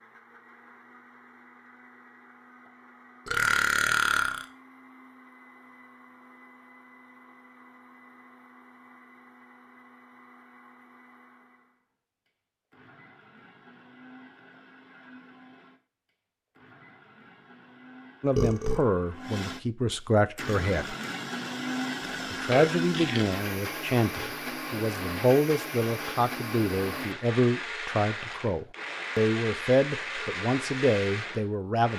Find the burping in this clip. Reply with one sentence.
The burping can be heard from 3.2 to 4.5 s, from 18.4 to 18.9 s and from 22.0 to 23.3 s.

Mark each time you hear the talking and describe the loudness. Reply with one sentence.
You can hear the talking briefly from 18.2 to 20.9 s; and from 22.3 to 31.9 s, at a steady volume.